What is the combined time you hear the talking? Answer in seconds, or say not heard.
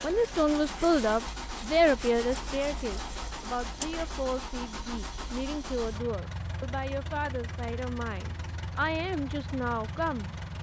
10 s.